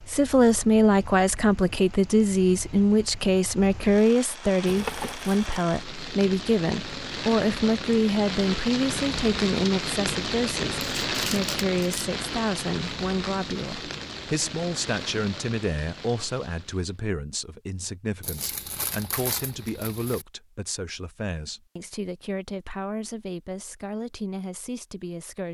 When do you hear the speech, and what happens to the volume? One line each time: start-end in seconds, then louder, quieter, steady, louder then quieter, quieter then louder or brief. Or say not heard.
0.1-25.4 quieter.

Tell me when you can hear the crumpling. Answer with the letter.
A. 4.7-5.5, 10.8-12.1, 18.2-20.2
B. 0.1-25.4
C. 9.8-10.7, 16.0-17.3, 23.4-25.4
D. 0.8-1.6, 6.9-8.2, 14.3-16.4
A.